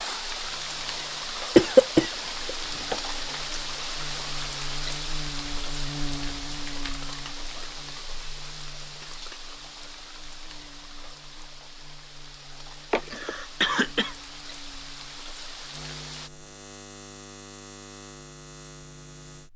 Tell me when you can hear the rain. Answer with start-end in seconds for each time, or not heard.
0.0-16.3.